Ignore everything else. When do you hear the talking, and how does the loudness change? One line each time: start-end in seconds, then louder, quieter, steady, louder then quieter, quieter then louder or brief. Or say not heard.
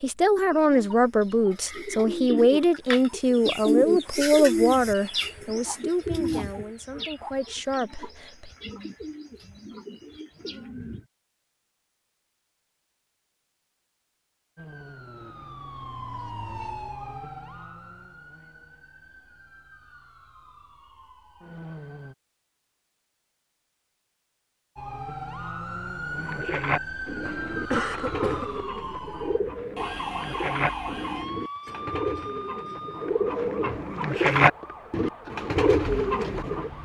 0.0-8.5 quieter.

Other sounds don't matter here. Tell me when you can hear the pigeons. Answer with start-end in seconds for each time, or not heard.
0.5-11.1, 26.1-36.7.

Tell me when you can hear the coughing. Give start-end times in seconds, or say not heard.
27.2-28.6.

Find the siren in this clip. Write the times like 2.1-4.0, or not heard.
14.6-22.1, 24.8-36.8.